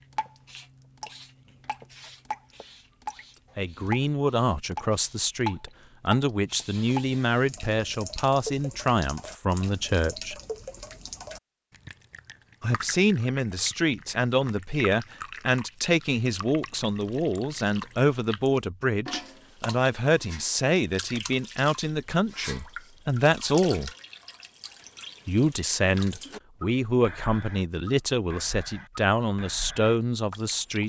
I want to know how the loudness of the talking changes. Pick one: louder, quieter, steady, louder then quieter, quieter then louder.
steady.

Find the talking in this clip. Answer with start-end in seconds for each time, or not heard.
3.5-10.3, 12.6-23.9, 25.2-30.8.